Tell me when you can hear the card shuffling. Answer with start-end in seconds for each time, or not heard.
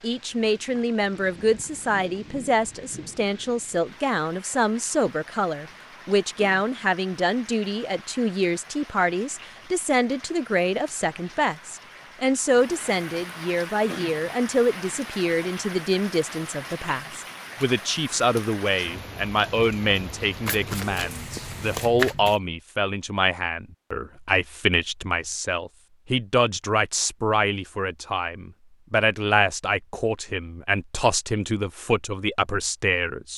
20.4-22.4.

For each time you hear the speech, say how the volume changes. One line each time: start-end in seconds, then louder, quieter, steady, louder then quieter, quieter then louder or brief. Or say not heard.
0.0-33.3 steady.